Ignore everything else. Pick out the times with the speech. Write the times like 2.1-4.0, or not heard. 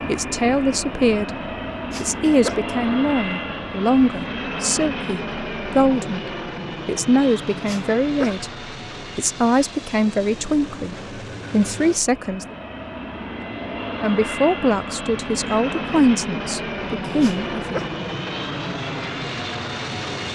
0.1-6.2, 6.8-12.6, 14.0-17.8.